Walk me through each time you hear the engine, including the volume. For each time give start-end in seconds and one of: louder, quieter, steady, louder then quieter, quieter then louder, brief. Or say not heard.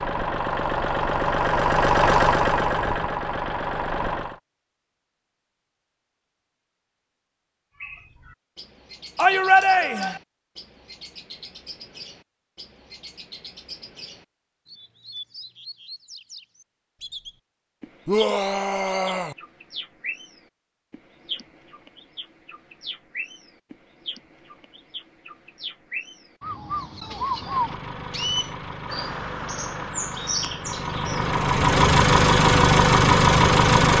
0.0-4.4 louder then quieter
27.3-33.9 louder.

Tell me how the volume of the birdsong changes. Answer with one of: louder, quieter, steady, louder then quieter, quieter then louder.
louder.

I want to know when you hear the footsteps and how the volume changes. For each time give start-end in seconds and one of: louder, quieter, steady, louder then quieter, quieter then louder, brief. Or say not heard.
not heard.